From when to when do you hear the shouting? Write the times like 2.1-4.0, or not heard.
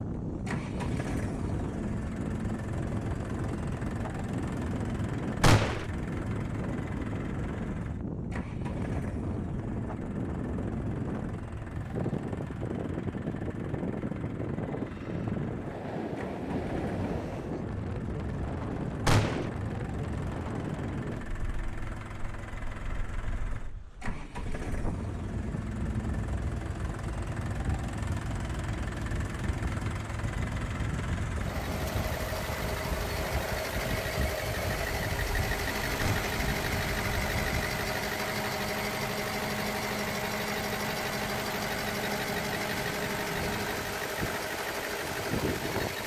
not heard.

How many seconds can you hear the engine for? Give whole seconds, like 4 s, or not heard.
46 s.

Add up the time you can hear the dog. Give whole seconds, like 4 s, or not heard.
not heard.